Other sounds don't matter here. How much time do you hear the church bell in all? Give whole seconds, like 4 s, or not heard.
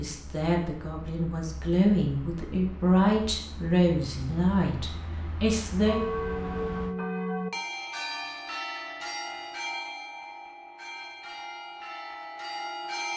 7 s.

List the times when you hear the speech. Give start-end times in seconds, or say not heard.
0.0-6.0.